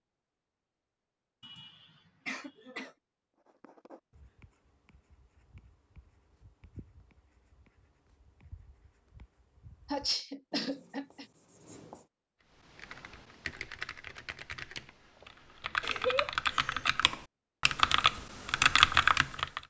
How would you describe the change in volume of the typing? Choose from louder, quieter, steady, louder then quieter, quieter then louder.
louder.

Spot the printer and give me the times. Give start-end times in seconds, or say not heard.
not heard.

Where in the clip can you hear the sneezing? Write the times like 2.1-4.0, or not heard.
1.4-3.0, 9.8-11.2, 15.8-16.9.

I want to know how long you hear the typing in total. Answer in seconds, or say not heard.
7 s.